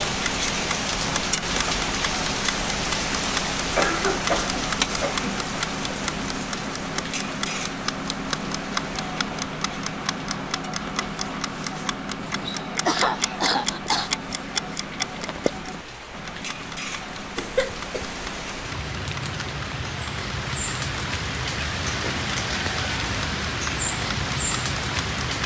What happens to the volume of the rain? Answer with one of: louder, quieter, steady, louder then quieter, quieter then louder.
quieter then louder.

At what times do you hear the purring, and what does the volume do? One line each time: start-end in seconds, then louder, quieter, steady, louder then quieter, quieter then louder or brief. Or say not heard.
not heard.